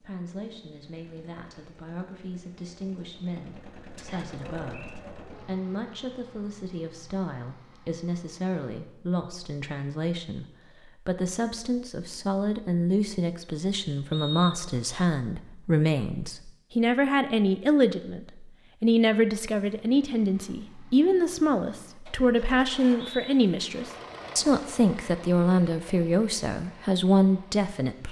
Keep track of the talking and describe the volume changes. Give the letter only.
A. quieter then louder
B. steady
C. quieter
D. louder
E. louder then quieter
D.